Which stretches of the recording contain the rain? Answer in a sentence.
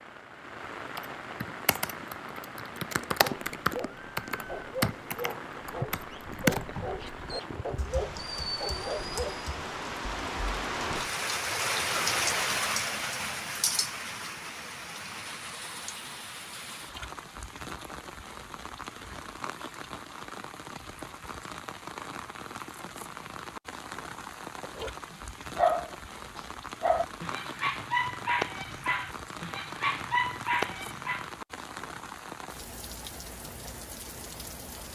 The rain can be heard from 0.0 to 34.9 s.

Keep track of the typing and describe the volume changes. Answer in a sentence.
The volume of the typing goes up, then down.